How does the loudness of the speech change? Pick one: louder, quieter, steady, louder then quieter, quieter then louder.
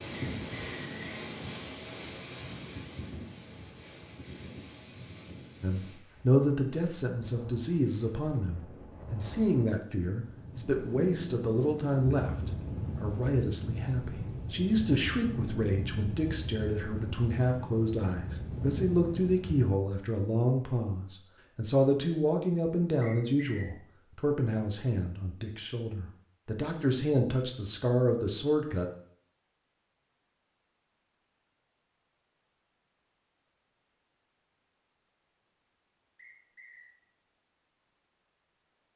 steady.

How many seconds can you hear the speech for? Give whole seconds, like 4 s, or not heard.
23 s.